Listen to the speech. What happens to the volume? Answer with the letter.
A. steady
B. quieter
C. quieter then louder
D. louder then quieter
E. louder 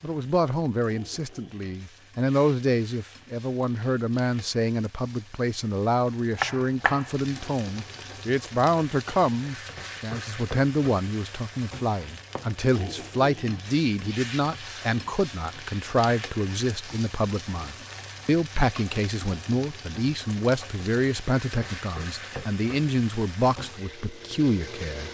A.